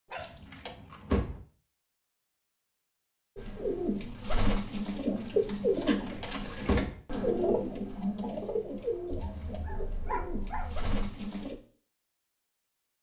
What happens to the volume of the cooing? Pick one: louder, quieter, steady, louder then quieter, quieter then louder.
quieter.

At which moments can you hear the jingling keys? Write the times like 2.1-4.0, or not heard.
0.1-1.4, 5.8-7.0, 9.1-9.8.